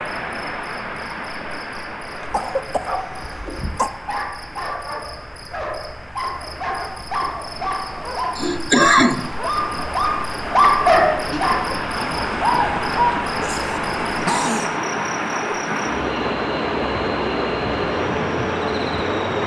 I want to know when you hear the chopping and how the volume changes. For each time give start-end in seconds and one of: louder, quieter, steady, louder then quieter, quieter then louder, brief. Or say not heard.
not heard.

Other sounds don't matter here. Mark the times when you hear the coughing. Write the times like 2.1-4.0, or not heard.
2.2-3.9, 8.3-9.3, 13.4-14.8.